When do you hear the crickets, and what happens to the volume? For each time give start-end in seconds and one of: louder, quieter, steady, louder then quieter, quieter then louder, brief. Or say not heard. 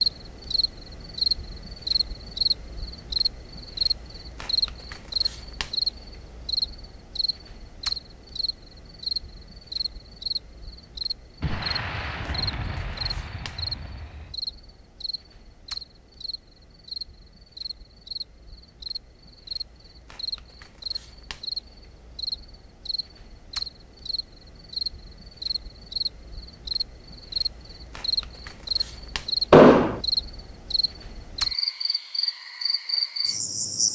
0.0-33.8 quieter then louder.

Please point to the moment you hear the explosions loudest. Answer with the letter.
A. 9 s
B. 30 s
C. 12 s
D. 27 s
B.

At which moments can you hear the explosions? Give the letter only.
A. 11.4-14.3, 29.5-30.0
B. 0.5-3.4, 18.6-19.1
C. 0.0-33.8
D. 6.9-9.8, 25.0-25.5
A.